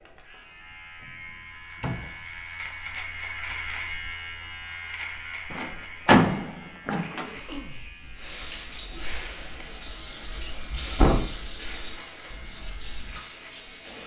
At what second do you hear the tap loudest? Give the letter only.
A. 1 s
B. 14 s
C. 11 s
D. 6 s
C.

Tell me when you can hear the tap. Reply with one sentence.
You can hear the tap from 8.0 to 14.0 s.